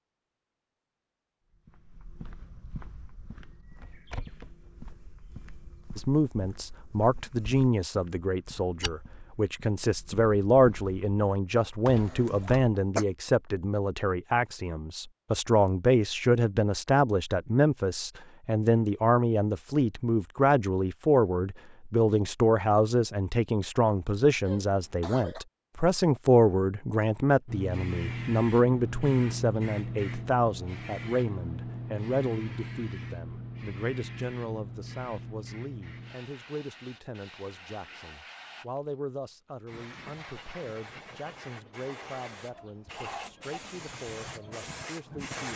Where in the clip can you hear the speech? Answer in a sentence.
The speech can be heard from 6.0 to 45.5 s.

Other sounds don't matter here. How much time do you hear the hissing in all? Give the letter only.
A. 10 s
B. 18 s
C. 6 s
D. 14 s
B.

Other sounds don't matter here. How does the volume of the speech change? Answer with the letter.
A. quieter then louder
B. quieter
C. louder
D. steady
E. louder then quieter
B.